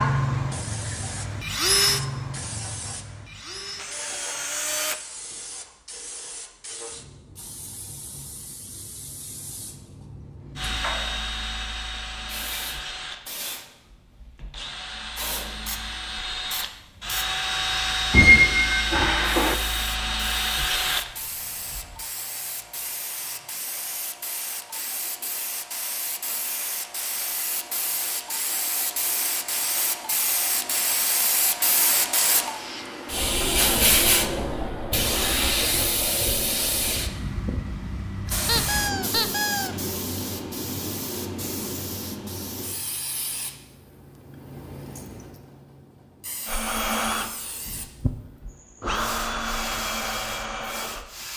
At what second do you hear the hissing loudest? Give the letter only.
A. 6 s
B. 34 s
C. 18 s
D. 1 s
B.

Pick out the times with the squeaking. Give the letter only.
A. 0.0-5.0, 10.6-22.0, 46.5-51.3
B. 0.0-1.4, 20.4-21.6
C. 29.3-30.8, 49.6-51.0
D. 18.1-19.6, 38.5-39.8
D.